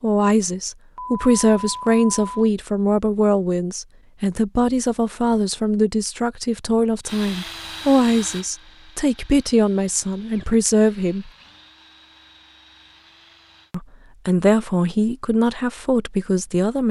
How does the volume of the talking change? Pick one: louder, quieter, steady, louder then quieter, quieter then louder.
steady.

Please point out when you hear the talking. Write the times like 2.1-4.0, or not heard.
0.0-11.3, 13.7-16.8.